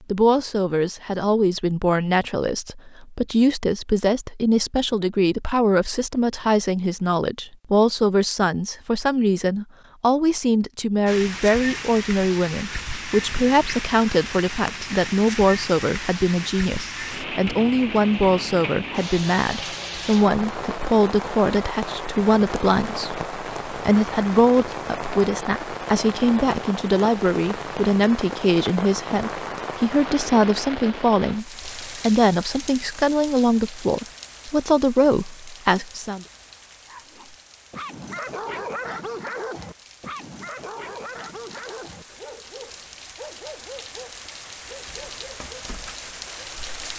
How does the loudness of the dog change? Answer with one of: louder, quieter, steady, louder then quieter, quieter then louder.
quieter.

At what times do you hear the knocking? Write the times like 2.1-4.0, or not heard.
not heard.